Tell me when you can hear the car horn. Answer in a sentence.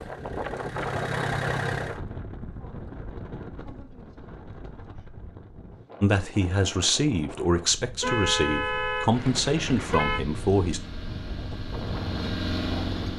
You can hear the car horn from 8.0 to 10.2 s.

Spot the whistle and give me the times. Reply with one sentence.
You can't hear the whistle here.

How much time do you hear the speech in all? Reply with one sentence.
The speech can be heard for 5 seconds in total.